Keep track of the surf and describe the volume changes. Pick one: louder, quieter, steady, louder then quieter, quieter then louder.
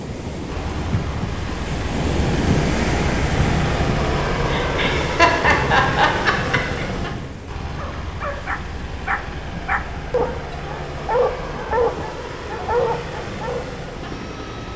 quieter.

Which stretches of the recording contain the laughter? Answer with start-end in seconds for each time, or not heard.
4.5-6.8.